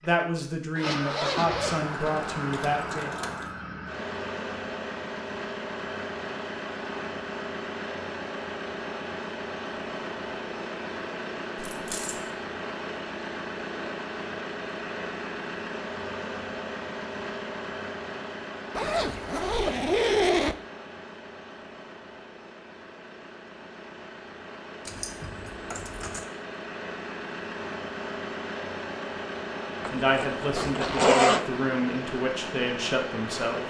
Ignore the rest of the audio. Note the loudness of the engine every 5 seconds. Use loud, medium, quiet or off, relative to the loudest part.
loud, loud, loud, loud, medium, loud, loud.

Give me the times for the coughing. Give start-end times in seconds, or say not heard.
not heard.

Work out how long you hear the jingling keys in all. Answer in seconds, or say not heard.
4 s.